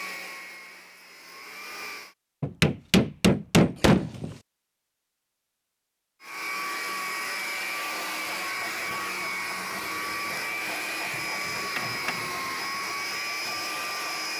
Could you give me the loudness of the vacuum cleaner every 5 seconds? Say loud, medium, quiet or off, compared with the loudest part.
medium, loud, loud.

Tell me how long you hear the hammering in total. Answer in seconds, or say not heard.
3 s.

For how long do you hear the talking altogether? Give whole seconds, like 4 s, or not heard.
not heard.